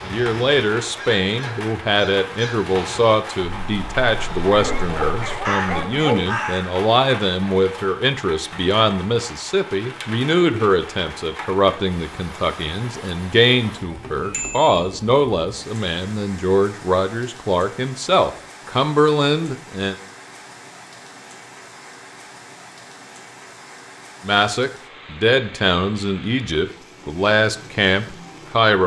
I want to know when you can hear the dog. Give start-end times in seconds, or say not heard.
4.5-6.5.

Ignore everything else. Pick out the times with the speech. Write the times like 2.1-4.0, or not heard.
0.0-19.9, 24.2-28.8.